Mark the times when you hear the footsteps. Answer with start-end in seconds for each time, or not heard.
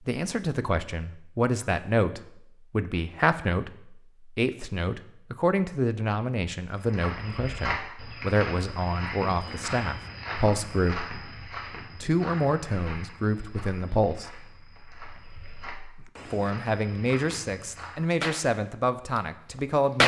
6.7-18.1.